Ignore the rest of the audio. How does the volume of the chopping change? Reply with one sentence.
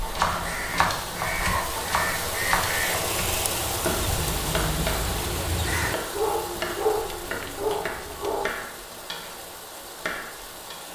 The loudness of the chopping goes down.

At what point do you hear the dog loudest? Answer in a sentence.
The volume of the dog peaks at 7 seconds.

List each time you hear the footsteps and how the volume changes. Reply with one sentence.
The footsteps can't be heard in this clip.